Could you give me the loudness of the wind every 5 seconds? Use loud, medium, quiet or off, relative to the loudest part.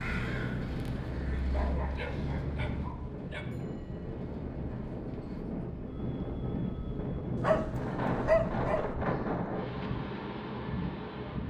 medium, loud, loud.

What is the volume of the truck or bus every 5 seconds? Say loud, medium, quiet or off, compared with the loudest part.
loud, medium, off.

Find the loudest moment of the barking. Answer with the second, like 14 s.
8 s.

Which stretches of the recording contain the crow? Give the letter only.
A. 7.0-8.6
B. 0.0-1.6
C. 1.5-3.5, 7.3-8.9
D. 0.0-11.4
B.